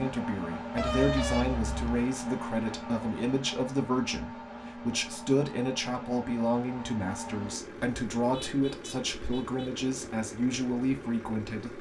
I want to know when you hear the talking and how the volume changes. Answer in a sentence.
You can hear the talking from 0.0 to 11.7 s, at a steady volume.